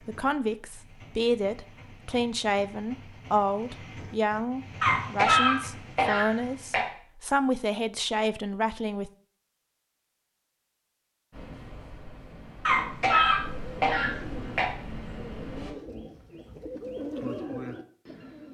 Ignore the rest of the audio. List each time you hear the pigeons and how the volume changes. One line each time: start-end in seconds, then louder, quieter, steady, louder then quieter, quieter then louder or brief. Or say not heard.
12.6-18.4 louder.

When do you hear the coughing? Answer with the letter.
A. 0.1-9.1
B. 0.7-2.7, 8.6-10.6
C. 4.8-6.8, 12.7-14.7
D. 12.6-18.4
C.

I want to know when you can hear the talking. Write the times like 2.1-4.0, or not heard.
0.1-9.1.